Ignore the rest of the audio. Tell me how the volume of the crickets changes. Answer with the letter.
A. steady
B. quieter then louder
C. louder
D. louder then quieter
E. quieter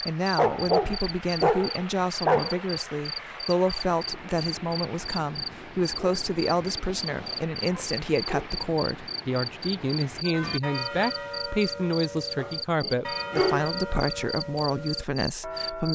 A.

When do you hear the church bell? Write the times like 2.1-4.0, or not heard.
10.2-15.8.